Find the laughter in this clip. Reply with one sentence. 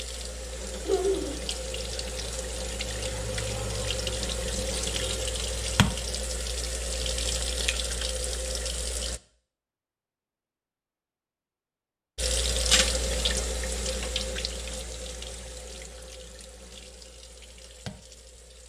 You can hear the laughter from 0.8 to 1.4 s.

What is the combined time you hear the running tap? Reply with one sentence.
The running tap can be heard for 16 seconds in total.